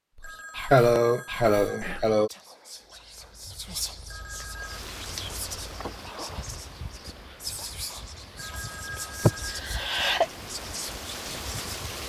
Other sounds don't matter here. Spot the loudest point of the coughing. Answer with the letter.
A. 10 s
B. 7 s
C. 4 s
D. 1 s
D.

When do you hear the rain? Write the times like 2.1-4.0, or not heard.
4.5-12.0.